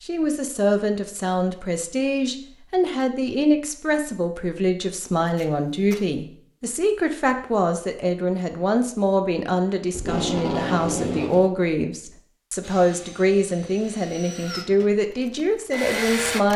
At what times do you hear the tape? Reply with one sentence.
You can hear the tape from 5.2 to 6.0 s and from 9.9 to 11.5 s.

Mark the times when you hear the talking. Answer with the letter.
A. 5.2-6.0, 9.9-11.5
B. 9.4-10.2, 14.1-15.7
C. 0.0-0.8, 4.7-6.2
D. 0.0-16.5
D.